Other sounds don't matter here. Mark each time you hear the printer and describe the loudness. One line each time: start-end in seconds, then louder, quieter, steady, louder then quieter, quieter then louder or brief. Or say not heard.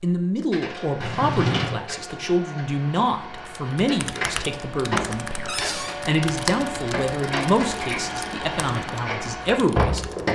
0.1-10.3 louder.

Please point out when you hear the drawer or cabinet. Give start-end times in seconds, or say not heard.
1.0-1.8, 5.5-6.0.